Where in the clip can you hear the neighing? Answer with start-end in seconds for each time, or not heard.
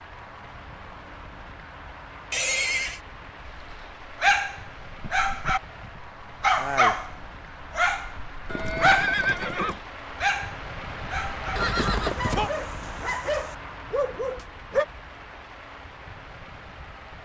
2.3-3.0, 8.4-9.8, 11.6-12.5.